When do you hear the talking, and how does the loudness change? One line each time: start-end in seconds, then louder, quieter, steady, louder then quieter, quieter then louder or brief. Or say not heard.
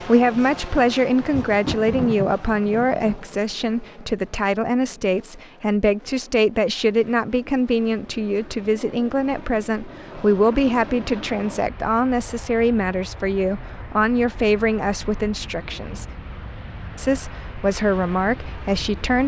0.0-16.1 steady
16.9-19.2 brief.